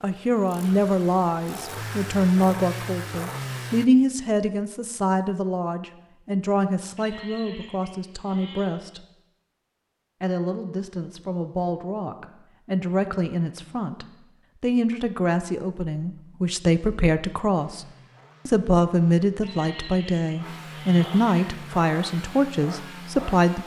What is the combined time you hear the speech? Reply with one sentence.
You can hear the speech for 22 seconds altogether.